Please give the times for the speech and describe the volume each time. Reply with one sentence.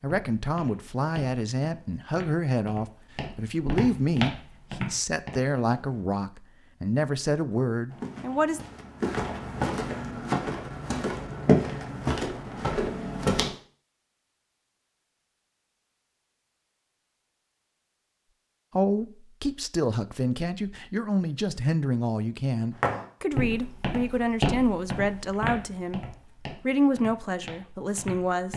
You can hear the speech from 0.0 to 8.6 s, at a steady volume; and from 18.8 to 28.5 s, at a steady volume.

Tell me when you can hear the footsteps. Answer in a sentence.
The footsteps can be heard from 0.0 to 6.0 s, from 7.9 to 13.5 s and from 22.8 to 28.5 s.